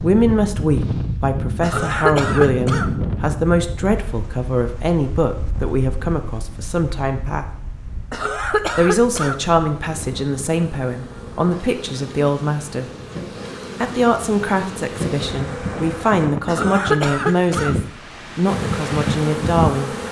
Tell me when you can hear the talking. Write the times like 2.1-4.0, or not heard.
0.0-7.5, 8.8-12.9, 13.8-19.9.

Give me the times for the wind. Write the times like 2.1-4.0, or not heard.
0.0-20.0.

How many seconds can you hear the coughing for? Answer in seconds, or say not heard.
4 s.